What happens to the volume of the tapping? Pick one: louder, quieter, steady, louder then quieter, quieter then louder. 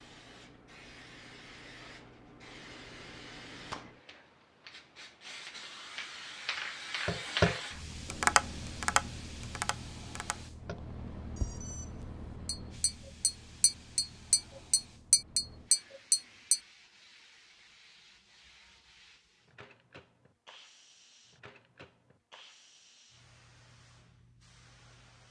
quieter then louder.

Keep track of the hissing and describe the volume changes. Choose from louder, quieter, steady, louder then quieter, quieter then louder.
louder then quieter.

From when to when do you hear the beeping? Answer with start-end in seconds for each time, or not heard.
10.8-12.0.